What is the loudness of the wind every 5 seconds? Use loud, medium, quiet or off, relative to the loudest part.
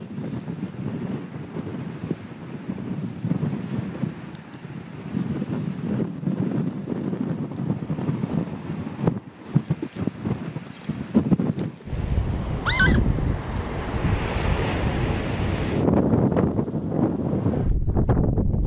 medium, loud, loud, loud.